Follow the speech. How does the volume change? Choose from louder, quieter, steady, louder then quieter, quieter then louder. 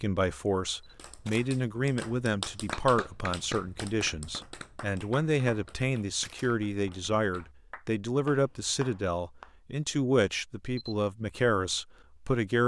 steady.